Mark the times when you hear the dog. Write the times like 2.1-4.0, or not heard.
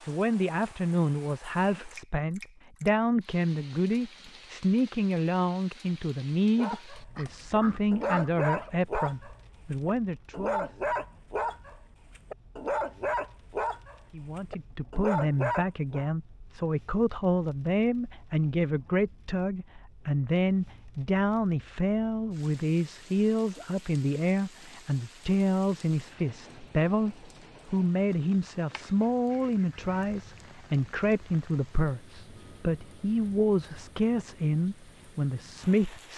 6.5-16.1.